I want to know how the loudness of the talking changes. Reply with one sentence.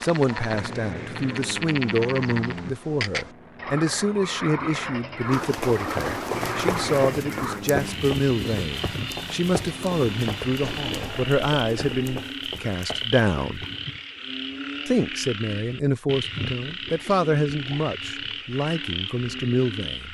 The loudness of the talking stays about the same.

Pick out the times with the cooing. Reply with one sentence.
The cooing can be heard from 5.3 to 7.1 s and from 10.6 to 12.2 s.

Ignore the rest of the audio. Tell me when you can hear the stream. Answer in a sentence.
You can't hear the stream here.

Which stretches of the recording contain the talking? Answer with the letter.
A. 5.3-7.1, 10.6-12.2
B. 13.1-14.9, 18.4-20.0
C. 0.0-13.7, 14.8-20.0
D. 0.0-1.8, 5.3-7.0
C.